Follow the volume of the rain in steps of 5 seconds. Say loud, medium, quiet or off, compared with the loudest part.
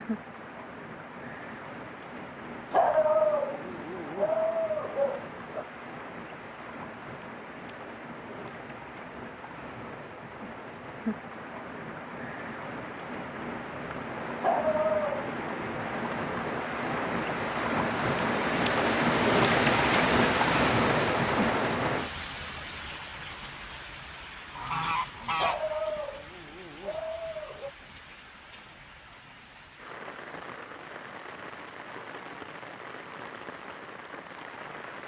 quiet, quiet, medium, loud, loud, quiet, quiet.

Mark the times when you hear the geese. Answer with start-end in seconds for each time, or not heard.
24.6-26.1.